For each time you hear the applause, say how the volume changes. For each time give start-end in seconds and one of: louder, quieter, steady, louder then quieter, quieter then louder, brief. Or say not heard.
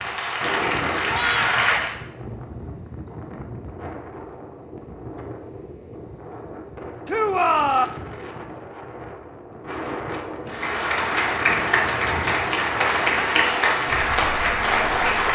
0.0-1.9 brief
10.4-15.3 steady.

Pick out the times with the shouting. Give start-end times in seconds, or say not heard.
1.1-1.9, 7.0-7.9, 13.2-13.7.